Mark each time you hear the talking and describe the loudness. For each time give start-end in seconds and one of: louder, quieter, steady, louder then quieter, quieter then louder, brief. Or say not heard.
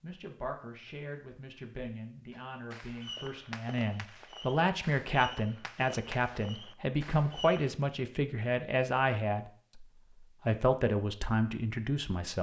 0.0-12.3 louder.